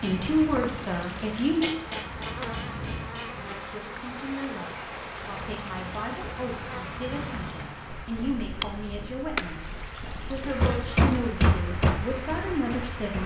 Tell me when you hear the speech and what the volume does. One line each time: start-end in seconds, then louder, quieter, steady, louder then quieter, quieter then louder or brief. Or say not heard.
0.0-1.6 brief
3.4-13.2 louder.